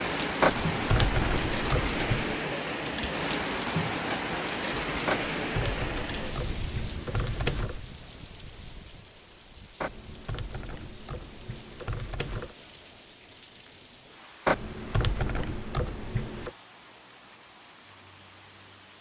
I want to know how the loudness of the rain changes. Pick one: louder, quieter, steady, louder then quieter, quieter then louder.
quieter.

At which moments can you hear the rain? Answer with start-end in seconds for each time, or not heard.
0.0-18.9.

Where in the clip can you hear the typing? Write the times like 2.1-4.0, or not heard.
0.4-2.4, 5.0-7.8, 9.8-12.6, 14.4-16.5.